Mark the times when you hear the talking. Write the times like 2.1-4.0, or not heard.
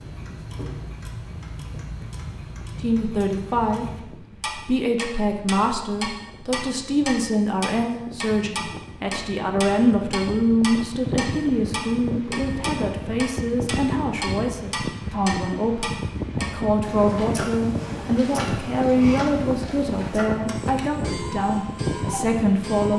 2.8-22.9.